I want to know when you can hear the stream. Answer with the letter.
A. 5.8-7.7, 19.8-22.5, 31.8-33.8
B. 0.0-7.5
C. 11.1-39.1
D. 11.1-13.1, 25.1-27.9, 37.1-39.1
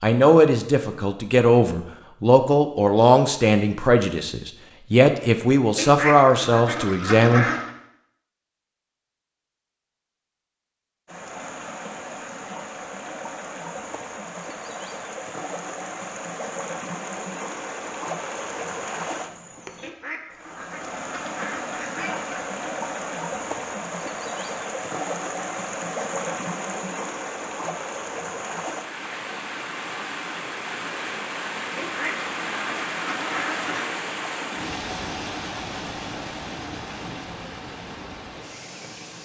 C.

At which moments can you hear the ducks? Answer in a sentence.
You can hear the ducks from 5.8 to 7.7 s, from 19.8 to 22.5 s and from 31.8 to 33.8 s.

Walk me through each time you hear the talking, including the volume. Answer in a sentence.
The talking can be heard from 0.0 to 7.5 s, at a steady volume.